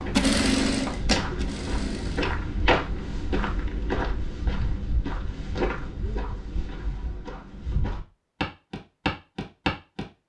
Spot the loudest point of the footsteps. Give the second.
3 s.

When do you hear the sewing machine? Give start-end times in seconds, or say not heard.
0.0-2.4.